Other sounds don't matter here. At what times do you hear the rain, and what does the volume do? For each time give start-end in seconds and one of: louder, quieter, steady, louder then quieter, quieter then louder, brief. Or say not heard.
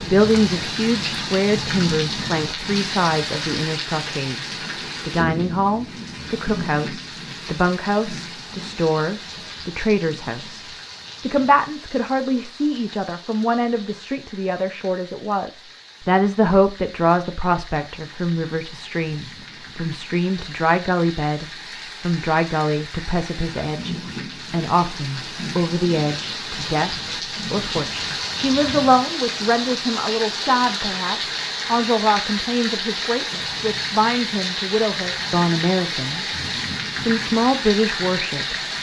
0.0-38.7 quieter then louder.